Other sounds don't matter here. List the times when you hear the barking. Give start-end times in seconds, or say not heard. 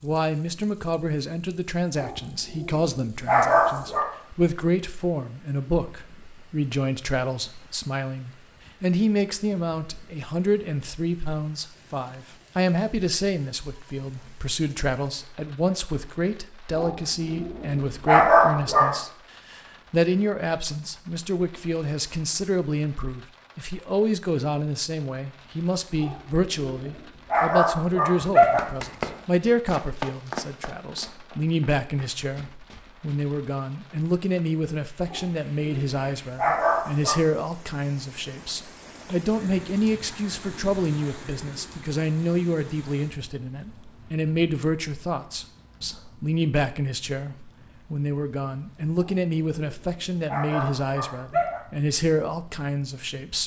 1.9-4.1, 16.8-19.0, 26.0-28.6, 35.0-37.2, 49.0-51.6.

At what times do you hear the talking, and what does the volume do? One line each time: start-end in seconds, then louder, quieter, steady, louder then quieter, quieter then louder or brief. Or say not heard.
0.0-53.4 steady.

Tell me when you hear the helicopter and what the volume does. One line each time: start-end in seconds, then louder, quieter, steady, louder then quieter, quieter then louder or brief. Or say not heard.
not heard.